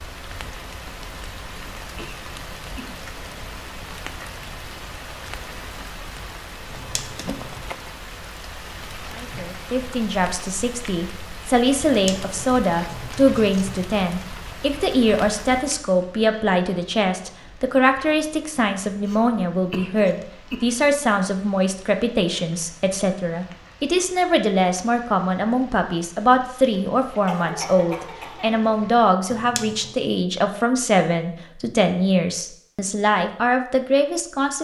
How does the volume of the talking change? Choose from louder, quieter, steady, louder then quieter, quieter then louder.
steady.